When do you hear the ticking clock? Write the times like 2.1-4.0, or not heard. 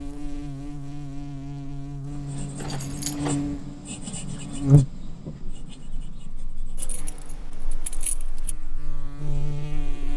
not heard.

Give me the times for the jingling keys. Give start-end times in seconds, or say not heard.
2.5-3.5, 6.8-8.6.